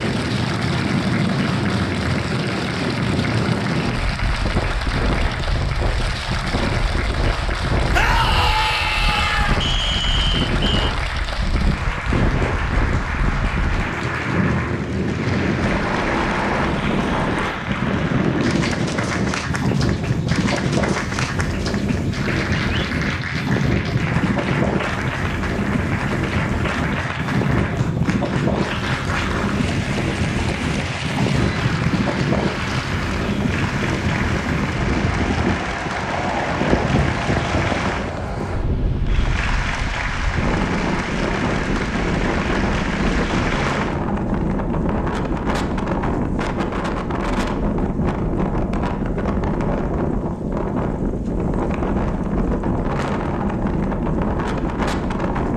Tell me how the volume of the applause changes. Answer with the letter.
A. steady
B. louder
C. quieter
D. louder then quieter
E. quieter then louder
A.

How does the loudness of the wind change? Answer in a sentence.
The loudness of the wind stays about the same.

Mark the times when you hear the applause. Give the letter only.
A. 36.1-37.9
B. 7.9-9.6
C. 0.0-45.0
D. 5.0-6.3
C.